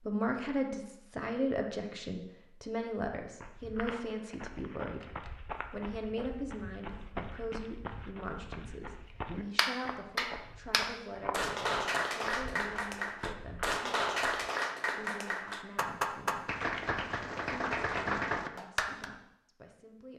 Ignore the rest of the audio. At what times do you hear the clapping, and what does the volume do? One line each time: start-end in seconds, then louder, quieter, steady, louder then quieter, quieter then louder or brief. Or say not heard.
9.6-19.1 steady.